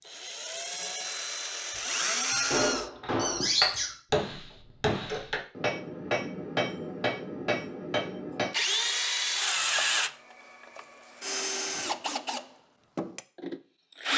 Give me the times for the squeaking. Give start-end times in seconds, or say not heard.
2.2-4.0.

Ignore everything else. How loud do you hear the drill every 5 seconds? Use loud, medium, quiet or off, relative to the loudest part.
medium, loud, medium.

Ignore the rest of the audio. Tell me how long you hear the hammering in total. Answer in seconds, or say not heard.
6 s.